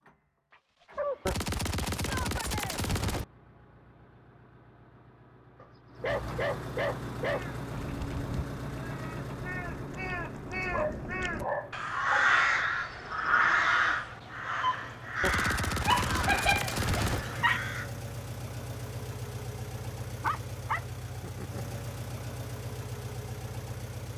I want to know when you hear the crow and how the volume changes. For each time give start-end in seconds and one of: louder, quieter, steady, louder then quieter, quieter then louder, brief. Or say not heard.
7.2-18.1 louder then quieter.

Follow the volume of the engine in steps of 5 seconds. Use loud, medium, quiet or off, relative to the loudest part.
quiet, loud, medium, loud, loud.